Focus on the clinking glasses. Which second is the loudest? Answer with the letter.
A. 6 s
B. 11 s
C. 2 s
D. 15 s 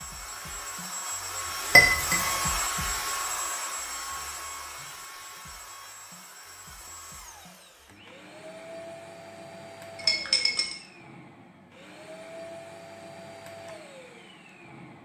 C.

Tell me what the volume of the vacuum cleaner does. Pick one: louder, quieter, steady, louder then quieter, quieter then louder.
quieter.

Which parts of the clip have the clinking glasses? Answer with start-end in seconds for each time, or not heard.
1.7-2.4, 9.9-10.8.